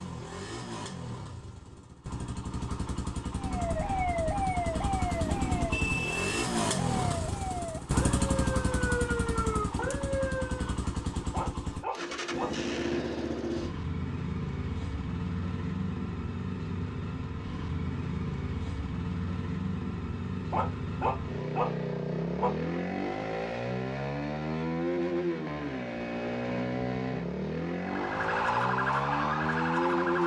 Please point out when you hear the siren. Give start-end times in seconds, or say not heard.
3.3-10.8, 27.8-30.2.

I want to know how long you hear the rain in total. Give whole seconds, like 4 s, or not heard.
not heard.